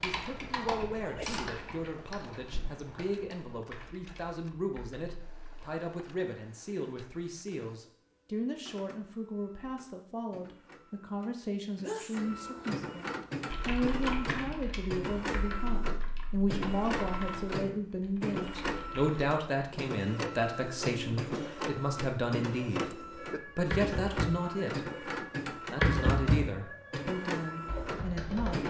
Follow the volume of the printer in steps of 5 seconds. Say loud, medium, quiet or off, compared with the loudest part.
quiet, quiet, loud, loud, loud, loud.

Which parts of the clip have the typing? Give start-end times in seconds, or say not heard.
0.0-5.7, 13.5-19.2, 23.1-28.6.